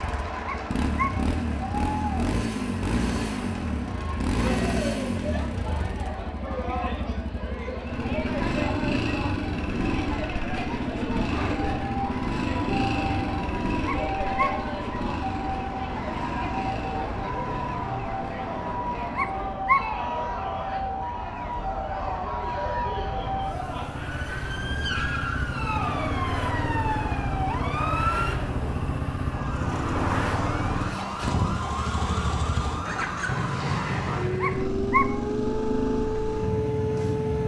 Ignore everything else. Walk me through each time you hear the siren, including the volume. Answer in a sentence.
The siren can be heard from 11.2 to 37.4 s, at a steady volume.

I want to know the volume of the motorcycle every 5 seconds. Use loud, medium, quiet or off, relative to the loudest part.
loud, loud, loud, medium, medium, loud, loud, loud.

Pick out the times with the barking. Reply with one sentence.
You can hear the barking from 0.5 to 1.1 s, from 13.8 to 14.5 s, from 19.1 to 19.8 s and from 34.4 to 35.0 s.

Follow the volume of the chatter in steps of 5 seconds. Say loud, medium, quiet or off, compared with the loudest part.
loud, loud, loud, loud, loud, loud, off, off.